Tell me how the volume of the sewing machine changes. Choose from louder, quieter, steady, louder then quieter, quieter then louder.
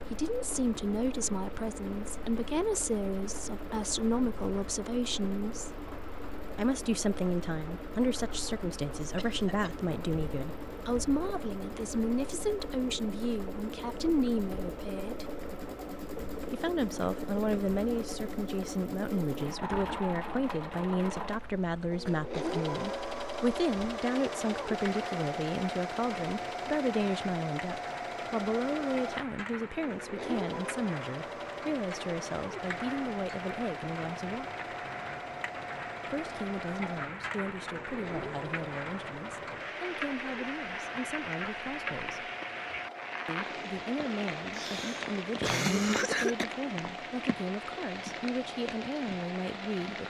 louder then quieter.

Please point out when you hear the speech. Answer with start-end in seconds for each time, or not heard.
0.0-5.8, 6.5-15.3, 16.5-34.5, 36.1-42.3, 43.2-50.0.